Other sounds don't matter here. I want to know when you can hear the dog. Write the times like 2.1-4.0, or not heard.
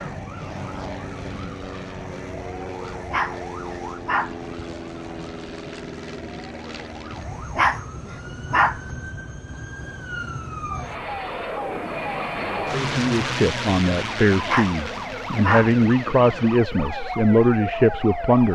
2.9-4.7, 7.1-8.9, 14.3-15.8.